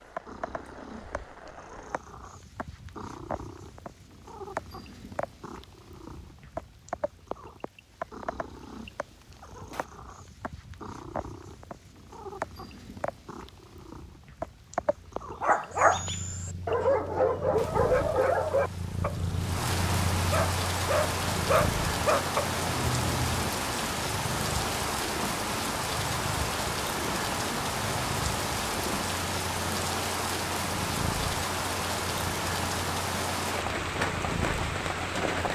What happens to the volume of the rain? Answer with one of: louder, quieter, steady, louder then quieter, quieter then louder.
louder.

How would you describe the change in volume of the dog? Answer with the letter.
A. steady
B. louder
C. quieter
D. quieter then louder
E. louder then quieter
D.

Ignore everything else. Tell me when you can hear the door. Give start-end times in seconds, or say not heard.
not heard.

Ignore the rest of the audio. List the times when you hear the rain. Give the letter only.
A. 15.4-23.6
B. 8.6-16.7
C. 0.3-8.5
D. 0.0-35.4
D.